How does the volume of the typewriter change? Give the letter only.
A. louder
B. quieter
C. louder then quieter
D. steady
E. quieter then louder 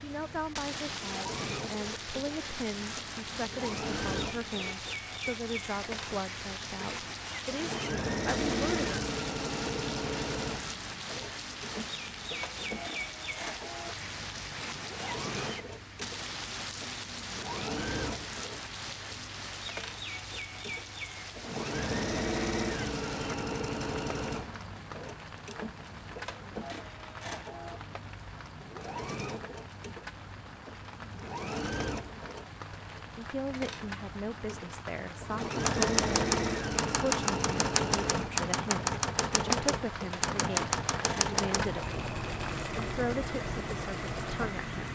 B.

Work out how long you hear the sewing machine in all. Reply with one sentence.
The sewing machine can be heard for 45 seconds in total.